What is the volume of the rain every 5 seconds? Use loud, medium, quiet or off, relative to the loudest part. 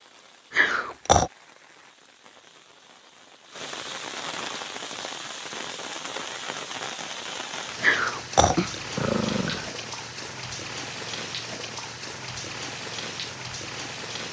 medium, loud, loud.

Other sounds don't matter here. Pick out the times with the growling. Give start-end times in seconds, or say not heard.
0.5-1.3, 7.8-9.7.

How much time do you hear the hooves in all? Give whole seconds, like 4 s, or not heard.
not heard.